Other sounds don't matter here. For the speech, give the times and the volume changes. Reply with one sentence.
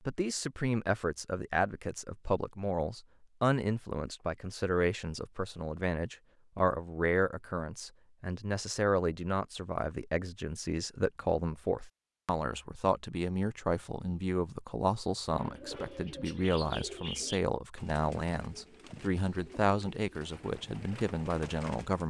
The speech can be heard from 0.1 to 22.0 s, at a steady volume.